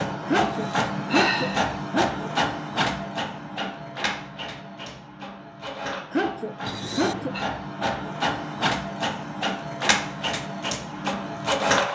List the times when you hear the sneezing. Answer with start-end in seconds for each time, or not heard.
0.2-2.3, 6.1-7.3.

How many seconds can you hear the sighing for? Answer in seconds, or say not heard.
2 s.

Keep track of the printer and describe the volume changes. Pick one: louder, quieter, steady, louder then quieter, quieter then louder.
quieter then louder.